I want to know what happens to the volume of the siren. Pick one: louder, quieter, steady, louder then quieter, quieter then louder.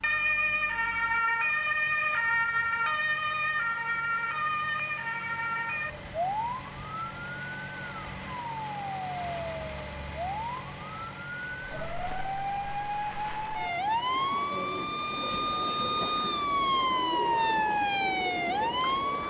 quieter then louder.